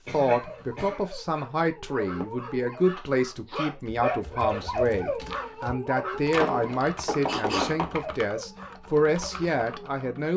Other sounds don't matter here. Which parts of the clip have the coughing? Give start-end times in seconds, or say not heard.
0.1-1.1, 7.2-8.2.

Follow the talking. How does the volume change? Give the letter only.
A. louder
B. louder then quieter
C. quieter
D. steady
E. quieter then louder
D.